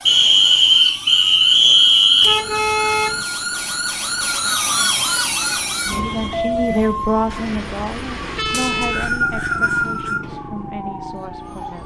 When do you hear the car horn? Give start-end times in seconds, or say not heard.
2.2-3.2, 7.3-9.1.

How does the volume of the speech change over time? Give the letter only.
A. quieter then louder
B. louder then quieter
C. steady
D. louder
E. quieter
E.